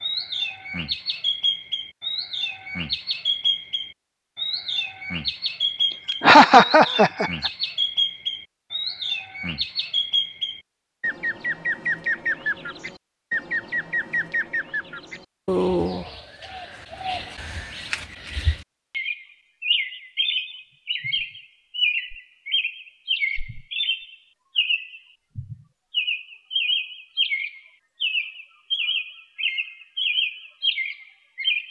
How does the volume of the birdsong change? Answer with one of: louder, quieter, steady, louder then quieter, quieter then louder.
steady.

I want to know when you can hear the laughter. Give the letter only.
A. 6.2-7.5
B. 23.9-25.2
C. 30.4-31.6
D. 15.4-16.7
A.